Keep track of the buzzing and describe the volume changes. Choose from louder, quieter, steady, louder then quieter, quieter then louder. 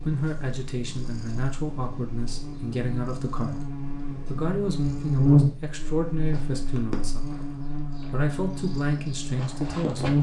louder then quieter.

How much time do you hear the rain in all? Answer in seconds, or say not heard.
not heard.